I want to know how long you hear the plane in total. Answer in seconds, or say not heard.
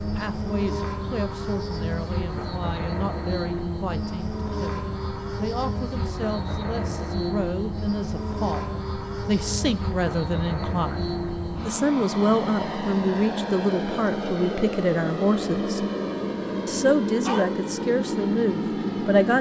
19 s.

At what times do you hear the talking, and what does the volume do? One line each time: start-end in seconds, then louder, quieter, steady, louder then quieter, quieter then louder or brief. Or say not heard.
0.0-15.8 louder
16.6-19.3 brief.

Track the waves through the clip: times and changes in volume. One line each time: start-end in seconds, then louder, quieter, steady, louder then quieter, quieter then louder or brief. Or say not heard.
not heard.